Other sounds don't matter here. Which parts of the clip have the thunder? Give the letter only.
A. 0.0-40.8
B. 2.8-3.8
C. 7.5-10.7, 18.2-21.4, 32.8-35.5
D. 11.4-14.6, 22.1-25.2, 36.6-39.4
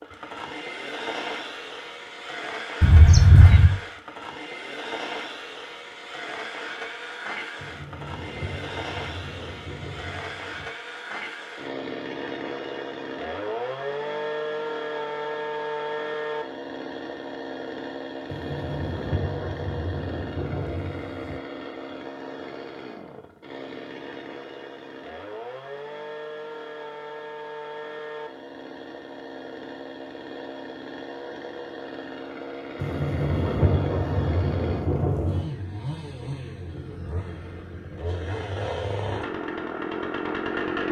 C.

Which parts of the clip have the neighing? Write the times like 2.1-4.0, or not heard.
2.8-3.8.